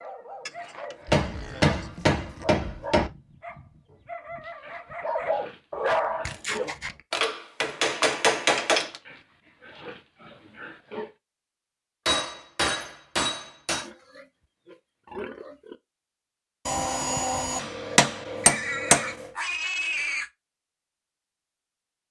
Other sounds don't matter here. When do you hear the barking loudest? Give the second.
6 s.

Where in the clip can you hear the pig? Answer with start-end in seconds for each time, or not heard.
0.5-2.5, 4.5-6.8, 8.8-11.2, 13.8-15.8, 18.4-20.3.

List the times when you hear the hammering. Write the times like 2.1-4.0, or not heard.
1.1-3.1, 7.1-8.9, 12.1-13.9, 16.6-19.2.